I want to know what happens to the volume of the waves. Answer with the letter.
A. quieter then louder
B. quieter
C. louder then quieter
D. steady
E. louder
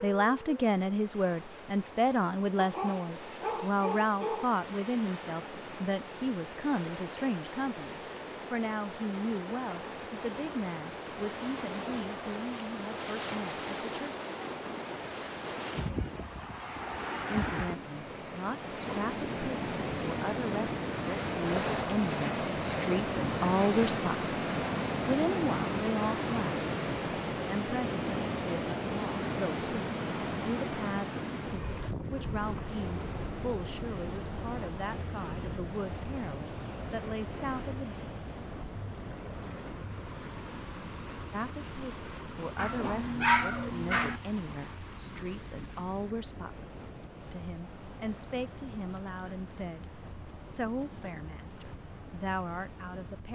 C.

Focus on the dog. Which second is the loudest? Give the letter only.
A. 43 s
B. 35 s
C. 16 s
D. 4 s
A.